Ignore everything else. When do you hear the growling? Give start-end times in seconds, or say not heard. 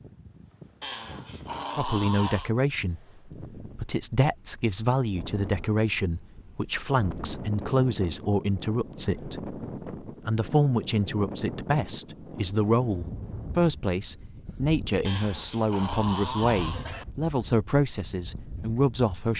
0.8-2.5, 15.1-17.1.